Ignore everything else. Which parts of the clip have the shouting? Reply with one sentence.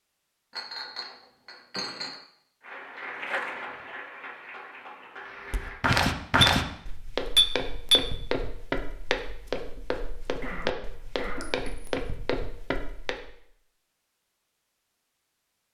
The shouting can't be heard in this clip.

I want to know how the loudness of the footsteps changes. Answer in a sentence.
The loudness of the footsteps goes down.